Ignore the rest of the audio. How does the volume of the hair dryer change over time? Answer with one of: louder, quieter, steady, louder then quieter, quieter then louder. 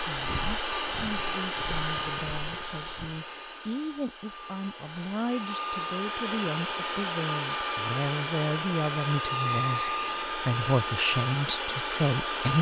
quieter then louder.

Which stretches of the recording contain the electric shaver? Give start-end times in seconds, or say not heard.
not heard.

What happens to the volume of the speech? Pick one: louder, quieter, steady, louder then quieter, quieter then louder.
louder.